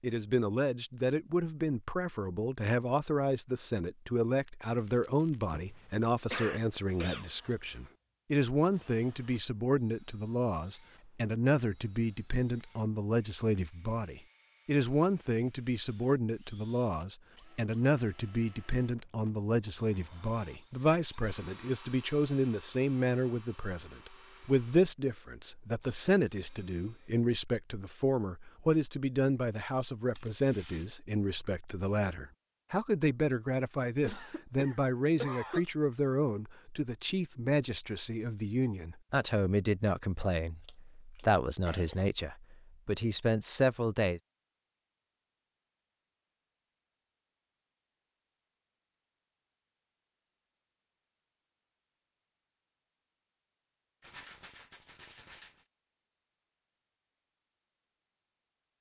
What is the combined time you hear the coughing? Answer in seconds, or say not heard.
5 s.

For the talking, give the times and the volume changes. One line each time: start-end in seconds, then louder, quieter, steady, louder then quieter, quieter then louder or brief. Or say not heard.
0.0-44.2 steady.